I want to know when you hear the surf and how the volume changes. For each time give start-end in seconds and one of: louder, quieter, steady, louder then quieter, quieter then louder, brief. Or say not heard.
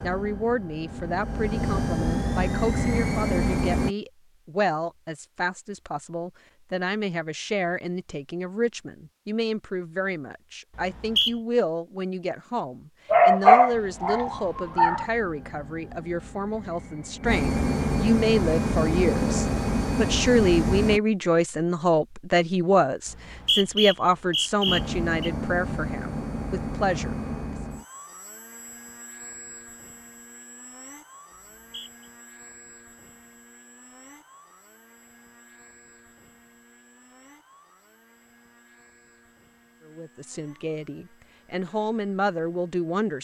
not heard.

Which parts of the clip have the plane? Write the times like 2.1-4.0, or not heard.
0.0-4.0, 13.7-21.0, 24.6-43.1.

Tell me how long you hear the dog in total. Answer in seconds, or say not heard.
2 s.